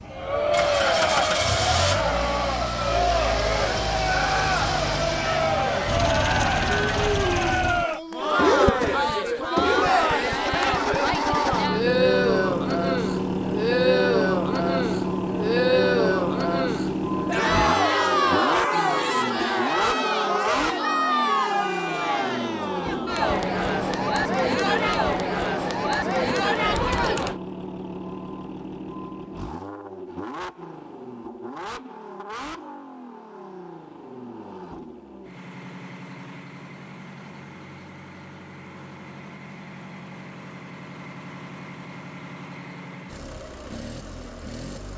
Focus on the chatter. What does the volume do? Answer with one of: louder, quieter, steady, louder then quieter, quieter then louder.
steady.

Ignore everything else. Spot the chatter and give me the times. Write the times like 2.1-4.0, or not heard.
0.0-27.4.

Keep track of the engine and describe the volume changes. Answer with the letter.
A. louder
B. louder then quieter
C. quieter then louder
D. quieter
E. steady
D.